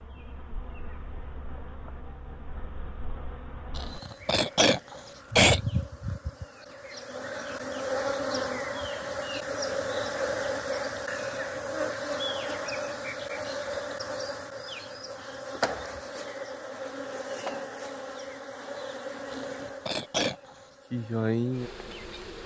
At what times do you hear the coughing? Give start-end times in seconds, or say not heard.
3.8-5.6, 19.3-20.5.